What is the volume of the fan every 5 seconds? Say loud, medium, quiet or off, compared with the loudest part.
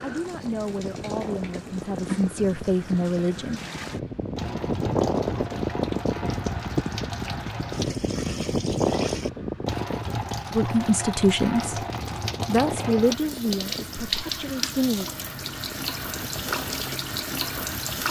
medium, loud, medium, quiet.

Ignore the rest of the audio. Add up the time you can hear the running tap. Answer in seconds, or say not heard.
18 s.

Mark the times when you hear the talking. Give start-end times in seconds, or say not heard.
0.0-3.6, 10.6-11.8, 12.4-15.1.